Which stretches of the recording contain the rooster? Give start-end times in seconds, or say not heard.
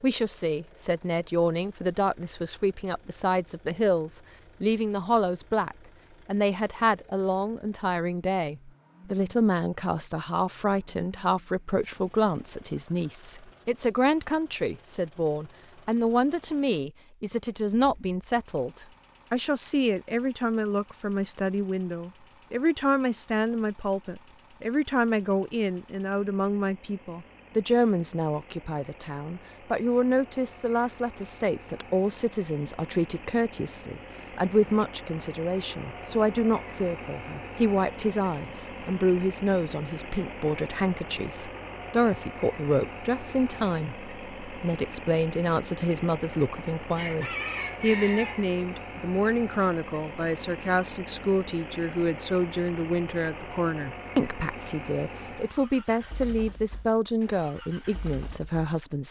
47.0-48.5.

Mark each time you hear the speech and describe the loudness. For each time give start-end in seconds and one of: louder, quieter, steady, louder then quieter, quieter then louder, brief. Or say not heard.
0.0-59.0 steady.